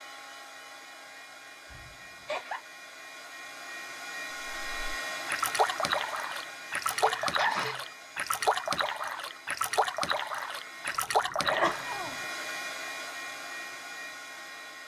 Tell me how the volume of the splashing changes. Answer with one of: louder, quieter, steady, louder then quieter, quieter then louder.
steady.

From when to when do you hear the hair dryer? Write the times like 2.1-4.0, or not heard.
0.0-14.8.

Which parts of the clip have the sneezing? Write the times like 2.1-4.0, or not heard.
1.7-2.6, 6.8-7.8, 11.3-12.2.